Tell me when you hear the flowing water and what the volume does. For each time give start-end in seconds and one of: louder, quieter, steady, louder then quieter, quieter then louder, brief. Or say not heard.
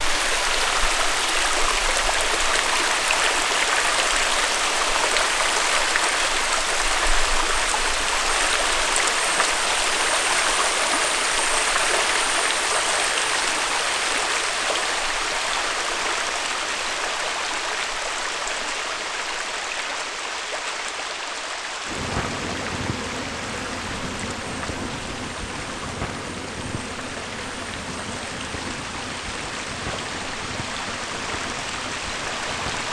0.0-32.8 quieter.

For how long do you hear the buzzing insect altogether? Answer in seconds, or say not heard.
11 s.